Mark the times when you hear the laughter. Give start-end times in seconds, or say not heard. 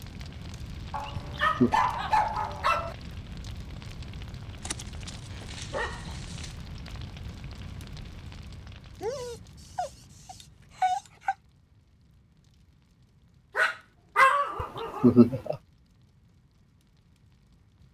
1.1-1.8, 14.6-15.6.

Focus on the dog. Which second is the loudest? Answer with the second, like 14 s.
14 s.